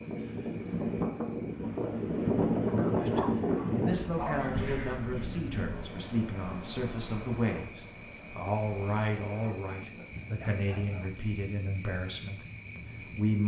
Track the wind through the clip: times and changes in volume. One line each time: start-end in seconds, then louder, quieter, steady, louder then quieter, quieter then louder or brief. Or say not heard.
0.0-13.3 quieter.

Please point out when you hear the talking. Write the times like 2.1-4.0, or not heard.
2.8-13.4.